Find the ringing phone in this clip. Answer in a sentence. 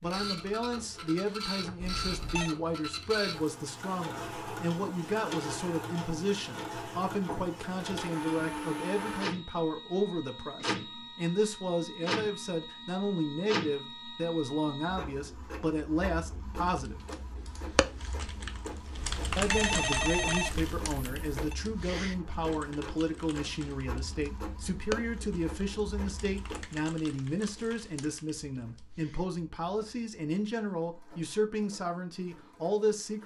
You can hear the ringing phone from 1.8 to 2.5 s and from 18.9 to 21.6 s.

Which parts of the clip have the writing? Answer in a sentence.
The writing can't be heard in this clip.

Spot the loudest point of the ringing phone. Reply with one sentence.
The loudest moment of the ringing phone is at 20 seconds.